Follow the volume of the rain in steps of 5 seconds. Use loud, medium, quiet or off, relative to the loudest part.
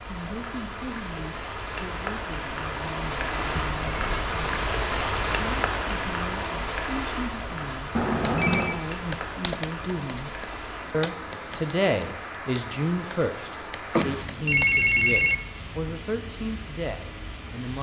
loud, loud, medium, medium.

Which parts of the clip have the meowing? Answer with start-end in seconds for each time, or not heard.
not heard.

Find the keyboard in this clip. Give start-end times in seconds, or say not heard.
8.2-14.8.